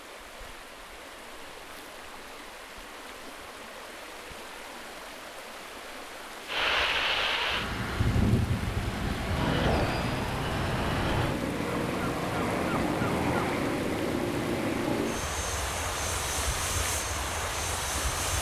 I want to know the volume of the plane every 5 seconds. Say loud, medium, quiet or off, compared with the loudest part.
off, loud, loud, medium.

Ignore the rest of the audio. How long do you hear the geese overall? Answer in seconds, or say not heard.
2 s.